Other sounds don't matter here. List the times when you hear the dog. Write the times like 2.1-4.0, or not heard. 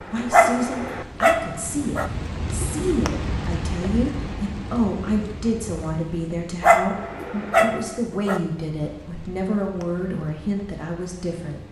0.3-2.1, 6.6-8.4.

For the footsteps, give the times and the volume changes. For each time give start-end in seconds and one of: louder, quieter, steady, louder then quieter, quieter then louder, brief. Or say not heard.
not heard.